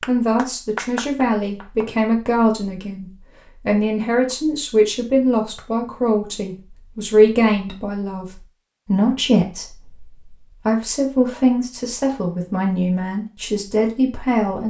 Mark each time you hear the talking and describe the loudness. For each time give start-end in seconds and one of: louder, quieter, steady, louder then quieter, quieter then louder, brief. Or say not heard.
0.0-14.6 steady.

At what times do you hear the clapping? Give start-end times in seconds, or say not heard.
0.0-1.9.